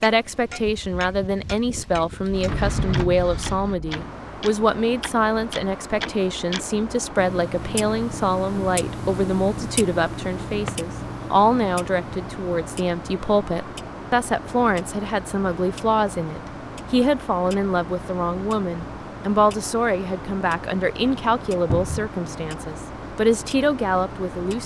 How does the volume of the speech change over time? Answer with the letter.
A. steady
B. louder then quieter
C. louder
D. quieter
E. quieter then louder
A.